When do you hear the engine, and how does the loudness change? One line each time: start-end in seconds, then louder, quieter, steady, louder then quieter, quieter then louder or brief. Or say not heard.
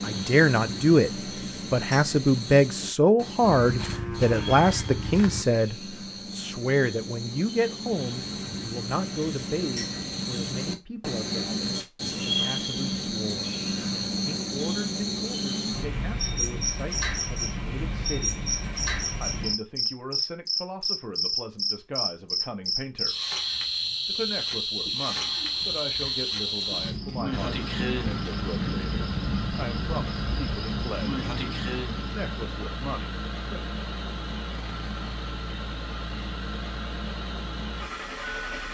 27.3-38.6 steady.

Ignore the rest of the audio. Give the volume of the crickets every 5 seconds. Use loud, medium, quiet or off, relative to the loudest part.
medium, medium, loud, loud, loud, loud, medium, off.